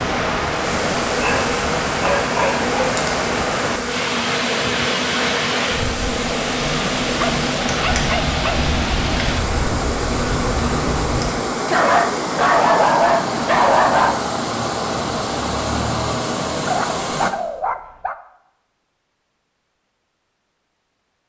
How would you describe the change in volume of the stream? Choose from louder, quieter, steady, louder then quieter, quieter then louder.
steady.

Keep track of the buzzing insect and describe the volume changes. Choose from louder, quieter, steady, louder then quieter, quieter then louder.
steady.